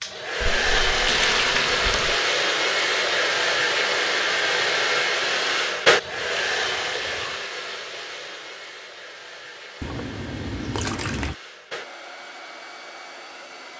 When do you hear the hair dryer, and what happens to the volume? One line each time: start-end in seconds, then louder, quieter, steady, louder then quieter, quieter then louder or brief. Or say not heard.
0.0-13.7 quieter.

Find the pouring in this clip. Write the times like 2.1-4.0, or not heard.
0.4-2.2, 6.0-7.5, 9.8-11.3.